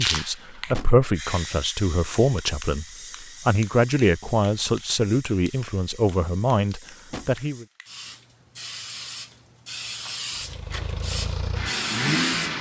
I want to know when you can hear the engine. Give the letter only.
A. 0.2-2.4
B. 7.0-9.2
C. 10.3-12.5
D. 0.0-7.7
C.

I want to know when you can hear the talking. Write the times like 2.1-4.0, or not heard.
0.0-7.7.